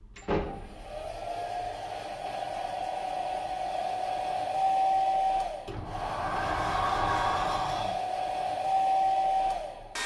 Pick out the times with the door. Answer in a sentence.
You can hear the door from 0.1 to 1.2 s and from 5.7 to 8.0 s.